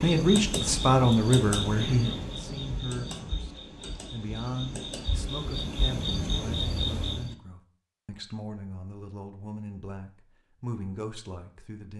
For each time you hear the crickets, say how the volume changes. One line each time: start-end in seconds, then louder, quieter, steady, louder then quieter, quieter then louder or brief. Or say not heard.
0.0-7.3 quieter then louder.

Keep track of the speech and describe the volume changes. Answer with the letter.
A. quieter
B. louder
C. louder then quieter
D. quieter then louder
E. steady
A.